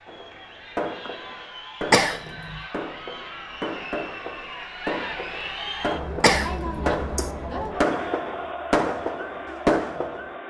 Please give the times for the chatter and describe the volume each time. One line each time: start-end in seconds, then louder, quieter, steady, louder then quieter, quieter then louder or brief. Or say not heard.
0.0-10.4 louder.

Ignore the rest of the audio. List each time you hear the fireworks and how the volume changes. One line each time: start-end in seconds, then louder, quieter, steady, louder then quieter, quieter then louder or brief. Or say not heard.
0.1-10.3 louder.